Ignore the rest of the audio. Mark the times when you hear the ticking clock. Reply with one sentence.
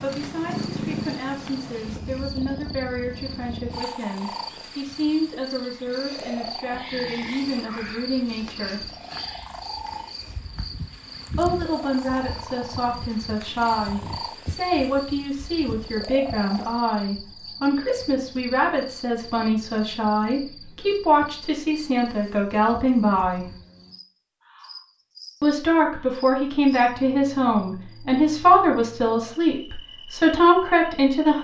The ticking clock can't be heard in this clip.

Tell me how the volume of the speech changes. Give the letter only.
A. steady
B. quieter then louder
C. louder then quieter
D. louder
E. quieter
D.